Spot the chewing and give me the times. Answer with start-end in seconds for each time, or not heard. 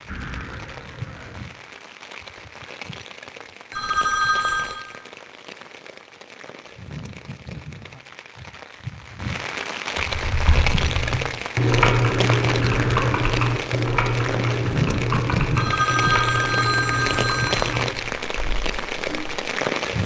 not heard.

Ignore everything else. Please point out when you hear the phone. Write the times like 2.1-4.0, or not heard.
3.7-4.8, 15.6-17.7.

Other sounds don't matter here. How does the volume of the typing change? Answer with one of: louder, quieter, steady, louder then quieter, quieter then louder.
quieter.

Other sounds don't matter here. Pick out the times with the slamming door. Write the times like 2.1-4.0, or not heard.
not heard.